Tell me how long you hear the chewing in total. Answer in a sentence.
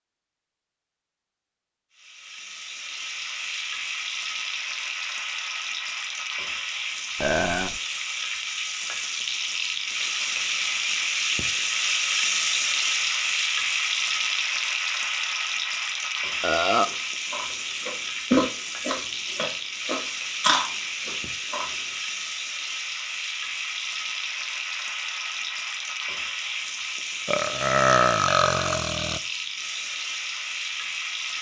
You can hear the chewing for 5 seconds altogether.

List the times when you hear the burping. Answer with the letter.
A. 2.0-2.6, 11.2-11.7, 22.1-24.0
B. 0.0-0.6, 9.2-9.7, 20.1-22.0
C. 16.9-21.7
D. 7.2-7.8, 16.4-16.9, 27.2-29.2
D.